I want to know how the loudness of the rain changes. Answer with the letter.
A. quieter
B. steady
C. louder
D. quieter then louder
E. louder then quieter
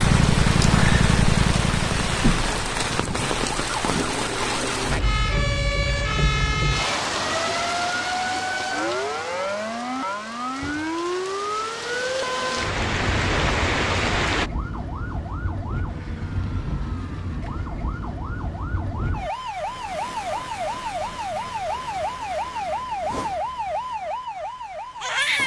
D.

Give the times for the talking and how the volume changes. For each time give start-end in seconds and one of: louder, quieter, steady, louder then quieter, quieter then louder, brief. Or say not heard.
not heard.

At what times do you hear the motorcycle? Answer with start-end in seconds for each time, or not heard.
0.0-3.2.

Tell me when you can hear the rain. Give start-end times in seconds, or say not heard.
0.0-14.5.